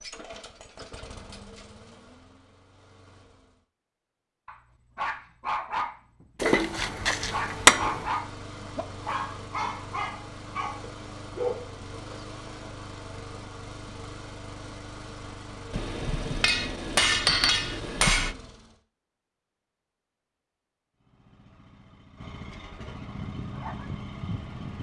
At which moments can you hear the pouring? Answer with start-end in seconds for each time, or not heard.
not heard.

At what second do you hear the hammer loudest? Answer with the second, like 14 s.
8 s.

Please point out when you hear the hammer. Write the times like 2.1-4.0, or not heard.
6.4-8.1, 15.7-18.4.